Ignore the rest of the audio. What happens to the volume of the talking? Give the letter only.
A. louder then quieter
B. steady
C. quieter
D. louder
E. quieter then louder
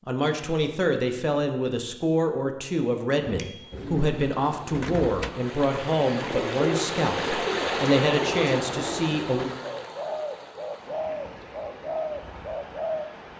B.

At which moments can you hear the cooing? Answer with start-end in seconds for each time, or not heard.
3.2-13.1.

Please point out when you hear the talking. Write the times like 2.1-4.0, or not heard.
0.1-9.5.